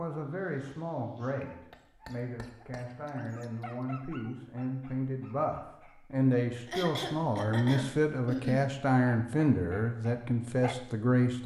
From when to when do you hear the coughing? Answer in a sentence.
The coughing can be heard from 1.4 to 3.1 s and from 6.7 to 8.7 s.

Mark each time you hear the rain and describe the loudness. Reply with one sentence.
You can't hear the rain here.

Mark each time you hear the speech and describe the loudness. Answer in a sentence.
You can hear the speech from 0.0 to 11.4 s, getting louder.